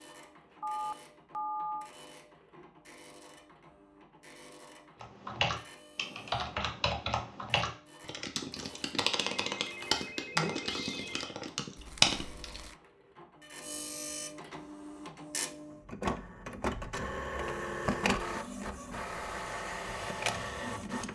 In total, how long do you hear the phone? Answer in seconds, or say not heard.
5 s.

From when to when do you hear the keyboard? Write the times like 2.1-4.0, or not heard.
5.0-12.6.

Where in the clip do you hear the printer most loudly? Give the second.
18 s.